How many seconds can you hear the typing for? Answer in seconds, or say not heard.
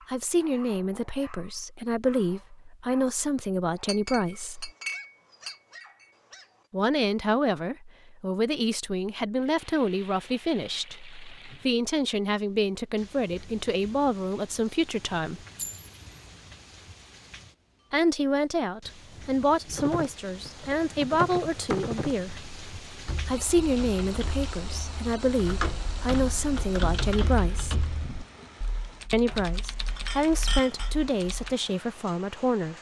12 s.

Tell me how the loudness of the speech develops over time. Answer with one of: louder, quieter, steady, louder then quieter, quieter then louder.
steady.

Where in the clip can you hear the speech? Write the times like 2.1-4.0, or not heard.
0.1-4.7, 6.7-15.4, 17.9-22.4, 23.2-27.9, 29.1-32.7.